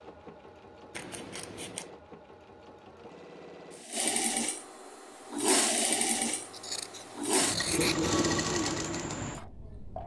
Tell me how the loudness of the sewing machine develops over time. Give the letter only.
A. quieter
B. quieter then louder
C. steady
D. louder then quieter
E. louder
E.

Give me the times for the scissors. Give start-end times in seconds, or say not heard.
0.9-1.9, 6.2-8.1.